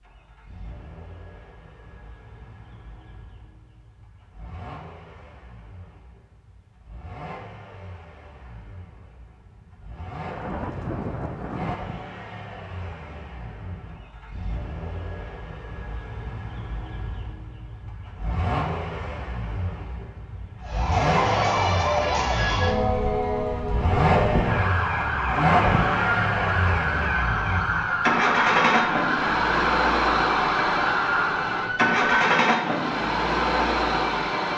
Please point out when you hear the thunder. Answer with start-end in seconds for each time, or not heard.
10.2-11.8.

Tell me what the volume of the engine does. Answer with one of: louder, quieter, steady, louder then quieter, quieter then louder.
louder.